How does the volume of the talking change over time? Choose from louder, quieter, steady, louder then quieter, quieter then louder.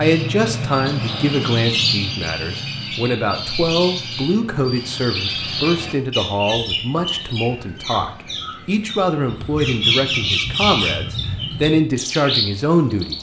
steady.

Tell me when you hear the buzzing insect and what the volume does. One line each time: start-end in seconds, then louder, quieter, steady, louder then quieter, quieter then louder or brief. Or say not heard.
not heard.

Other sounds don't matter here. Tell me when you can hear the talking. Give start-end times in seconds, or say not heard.
0.0-13.1.